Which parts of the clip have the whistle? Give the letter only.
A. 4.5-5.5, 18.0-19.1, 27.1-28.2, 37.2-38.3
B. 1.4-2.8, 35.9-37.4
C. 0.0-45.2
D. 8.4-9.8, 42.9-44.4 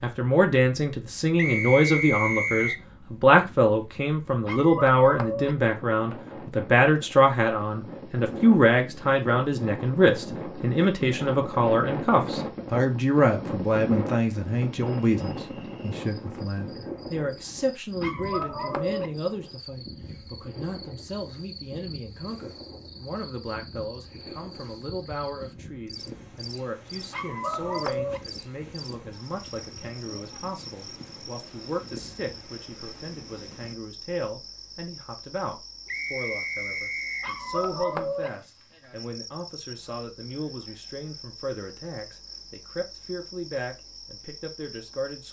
B.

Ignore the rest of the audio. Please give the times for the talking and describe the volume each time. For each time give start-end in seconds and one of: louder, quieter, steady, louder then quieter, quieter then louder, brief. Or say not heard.
0.0-45.2 quieter.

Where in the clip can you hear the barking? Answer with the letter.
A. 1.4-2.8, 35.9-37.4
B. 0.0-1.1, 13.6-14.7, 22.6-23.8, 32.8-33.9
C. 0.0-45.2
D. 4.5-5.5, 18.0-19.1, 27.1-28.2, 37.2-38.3
D.